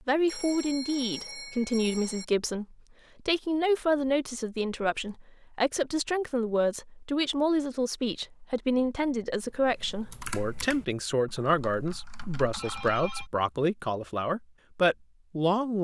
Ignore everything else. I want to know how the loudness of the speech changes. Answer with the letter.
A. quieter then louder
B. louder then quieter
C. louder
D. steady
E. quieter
D.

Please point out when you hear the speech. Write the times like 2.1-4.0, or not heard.
0.1-15.7.